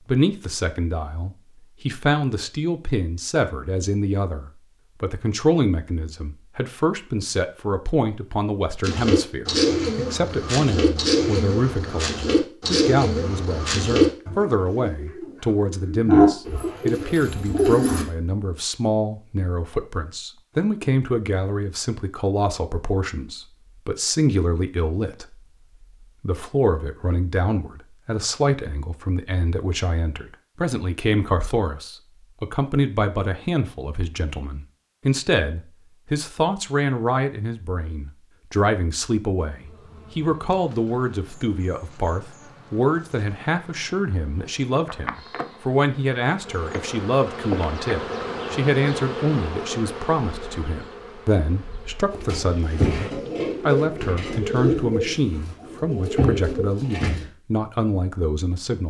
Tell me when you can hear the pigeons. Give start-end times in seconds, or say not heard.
8.8-18.1, 52.1-57.2.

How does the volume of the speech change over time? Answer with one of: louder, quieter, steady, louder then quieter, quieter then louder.
steady.